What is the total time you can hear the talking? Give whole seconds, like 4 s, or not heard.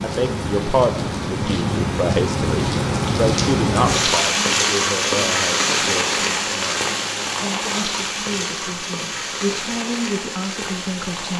11 s.